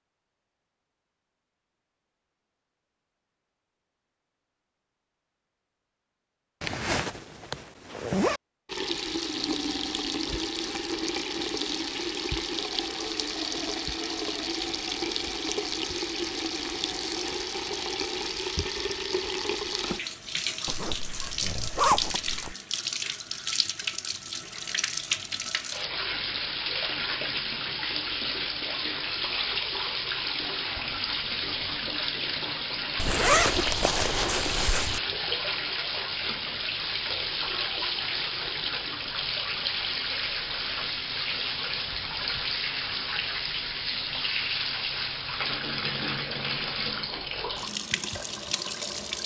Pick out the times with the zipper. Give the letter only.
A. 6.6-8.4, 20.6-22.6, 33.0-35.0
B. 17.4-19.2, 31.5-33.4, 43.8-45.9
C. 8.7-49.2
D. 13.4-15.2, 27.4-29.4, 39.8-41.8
A.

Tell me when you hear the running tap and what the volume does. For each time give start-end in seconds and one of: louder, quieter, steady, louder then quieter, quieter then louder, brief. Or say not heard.
8.7-49.2 steady.